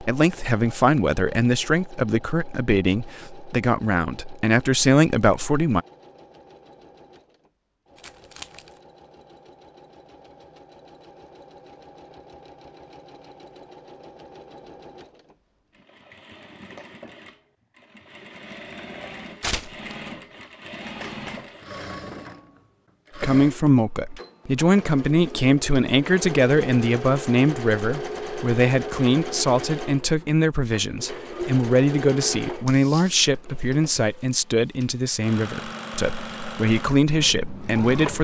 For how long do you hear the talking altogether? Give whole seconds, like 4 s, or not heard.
21 s.